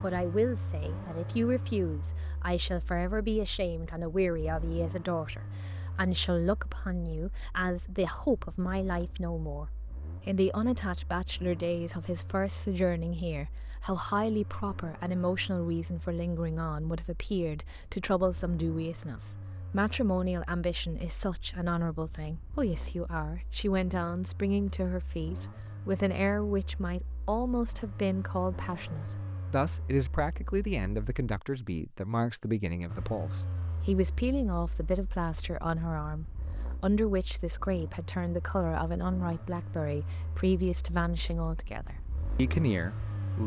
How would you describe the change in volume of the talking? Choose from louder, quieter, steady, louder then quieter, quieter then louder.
steady.